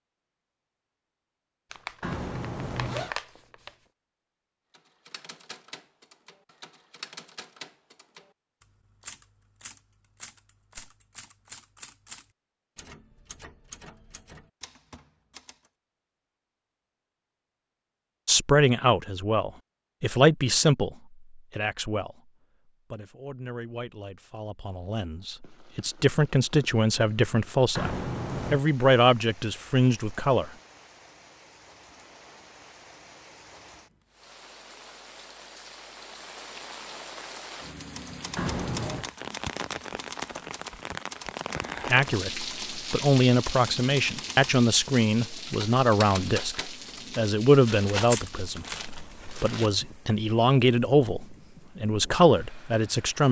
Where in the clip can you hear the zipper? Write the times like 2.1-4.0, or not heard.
2.0-3.1, 27.8-28.6, 38.4-39.1.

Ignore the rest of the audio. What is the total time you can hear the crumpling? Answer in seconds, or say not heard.
4 s.